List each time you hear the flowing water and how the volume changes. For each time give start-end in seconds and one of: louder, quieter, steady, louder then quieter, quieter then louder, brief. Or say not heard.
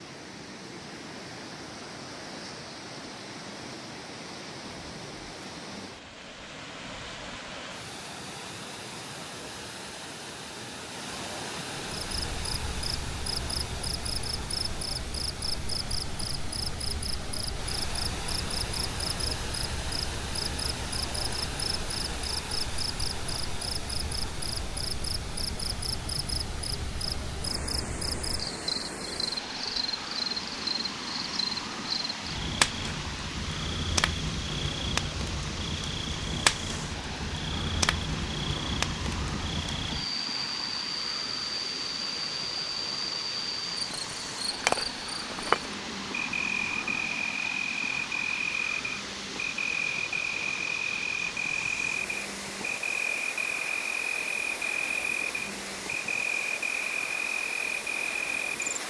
0.0-58.8 steady.